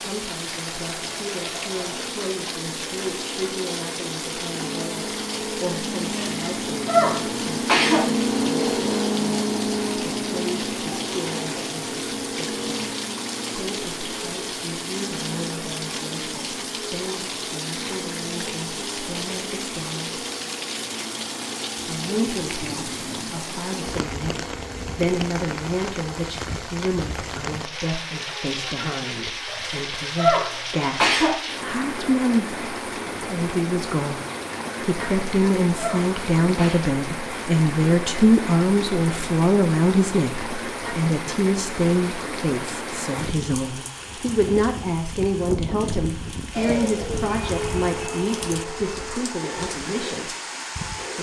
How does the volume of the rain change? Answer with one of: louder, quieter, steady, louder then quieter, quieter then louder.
steady.